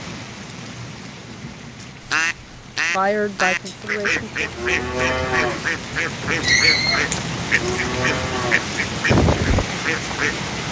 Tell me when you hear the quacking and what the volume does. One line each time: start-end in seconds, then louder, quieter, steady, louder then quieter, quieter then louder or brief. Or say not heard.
2.0-10.3 steady.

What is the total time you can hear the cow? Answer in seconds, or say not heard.
6 s.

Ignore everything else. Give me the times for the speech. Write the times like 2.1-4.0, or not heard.
2.9-4.5.